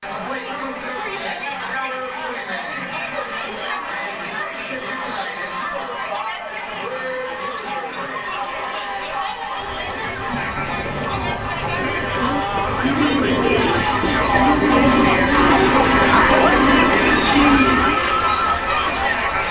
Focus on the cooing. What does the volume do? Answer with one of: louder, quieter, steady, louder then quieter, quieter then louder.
louder.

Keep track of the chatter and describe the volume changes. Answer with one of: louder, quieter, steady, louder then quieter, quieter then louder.
louder.